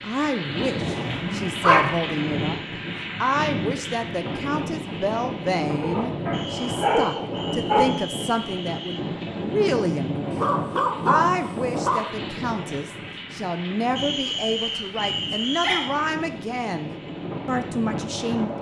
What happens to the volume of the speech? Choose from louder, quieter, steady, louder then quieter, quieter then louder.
steady.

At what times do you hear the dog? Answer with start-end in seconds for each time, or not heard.
1.1-1.9, 5.8-7.8, 10.3-12.1, 14.2-16.1.